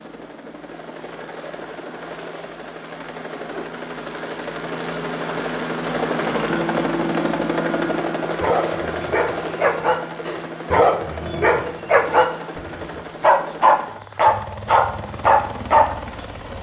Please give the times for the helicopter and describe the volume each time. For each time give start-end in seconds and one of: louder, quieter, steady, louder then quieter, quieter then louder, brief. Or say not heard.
0.0-16.5 louder then quieter.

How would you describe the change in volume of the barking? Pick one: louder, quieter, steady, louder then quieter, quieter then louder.
louder.